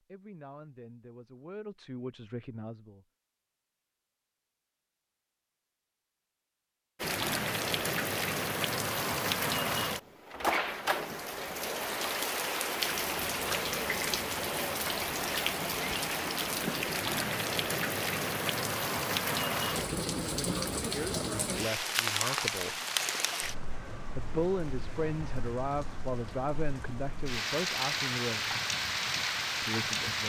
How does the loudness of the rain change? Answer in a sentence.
The volume of the rain stays about the same.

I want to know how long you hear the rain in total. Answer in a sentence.
The rain can be heard for 23 seconds in total.